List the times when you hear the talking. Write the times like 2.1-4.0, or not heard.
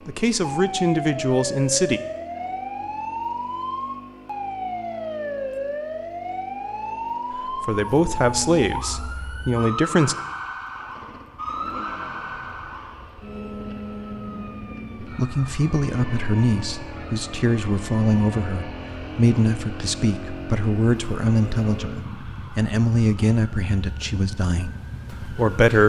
0.1-2.0, 7.5-10.2, 15.0-25.8.